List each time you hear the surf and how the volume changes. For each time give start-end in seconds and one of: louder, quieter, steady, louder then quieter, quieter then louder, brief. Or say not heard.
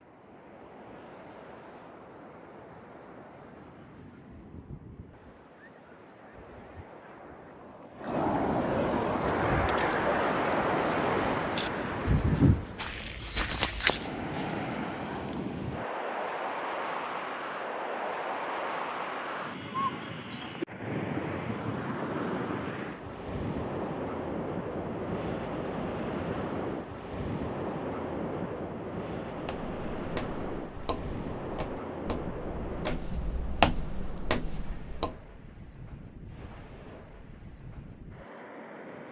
0.0-39.0 louder then quieter.